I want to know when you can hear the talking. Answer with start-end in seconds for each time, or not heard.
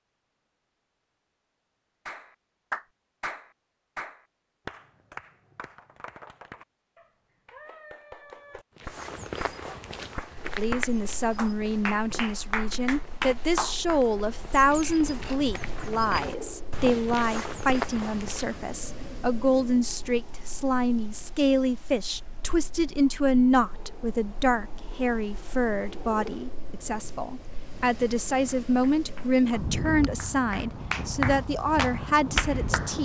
10.6-32.9.